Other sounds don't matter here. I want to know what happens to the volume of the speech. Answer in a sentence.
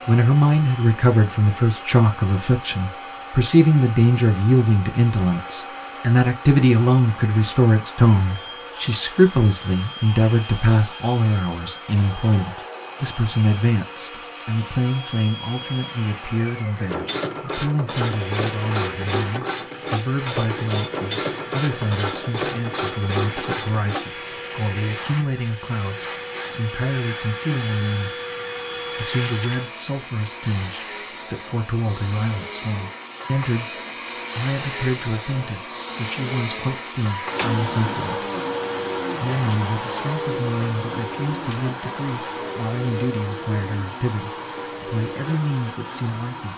The loudness of the speech goes down.